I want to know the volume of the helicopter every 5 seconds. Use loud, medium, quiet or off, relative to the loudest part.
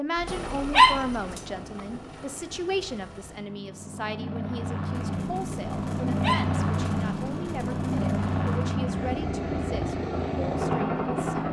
medium, loud, loud.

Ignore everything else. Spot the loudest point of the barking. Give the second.
1 s.